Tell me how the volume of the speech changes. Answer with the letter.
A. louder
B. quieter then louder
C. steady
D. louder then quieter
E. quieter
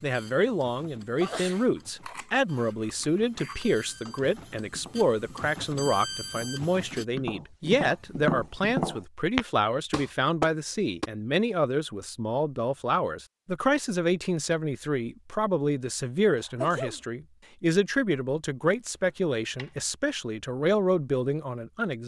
C.